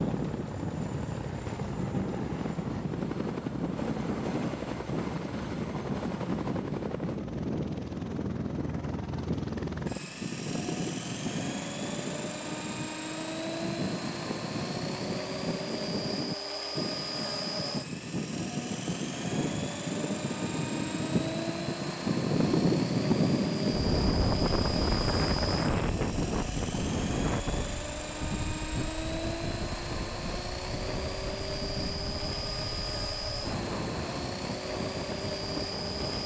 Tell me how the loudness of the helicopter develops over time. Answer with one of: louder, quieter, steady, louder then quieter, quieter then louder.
steady.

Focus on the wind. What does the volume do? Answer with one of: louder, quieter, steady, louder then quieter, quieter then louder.
louder then quieter.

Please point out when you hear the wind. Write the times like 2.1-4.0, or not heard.
0.0-36.2.